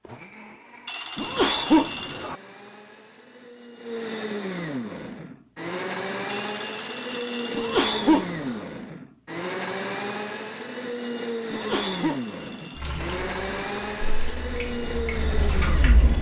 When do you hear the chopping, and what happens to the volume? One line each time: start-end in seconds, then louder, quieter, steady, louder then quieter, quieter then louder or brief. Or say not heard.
not heard.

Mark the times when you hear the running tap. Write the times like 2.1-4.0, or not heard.
12.8-16.1.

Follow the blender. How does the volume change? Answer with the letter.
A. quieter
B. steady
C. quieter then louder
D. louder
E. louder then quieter
D.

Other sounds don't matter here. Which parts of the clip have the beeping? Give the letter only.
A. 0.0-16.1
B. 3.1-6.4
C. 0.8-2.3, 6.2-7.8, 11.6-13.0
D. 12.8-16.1
C.